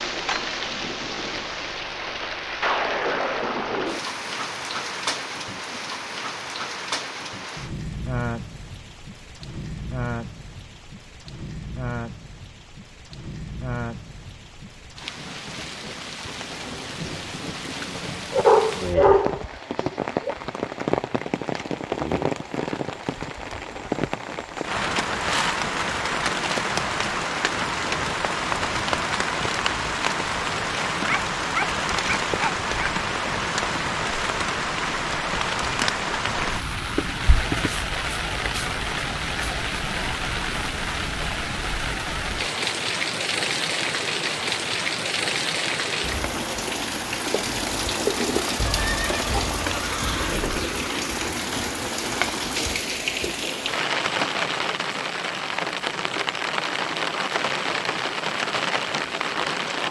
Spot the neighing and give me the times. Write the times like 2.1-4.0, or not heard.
48.5-50.6.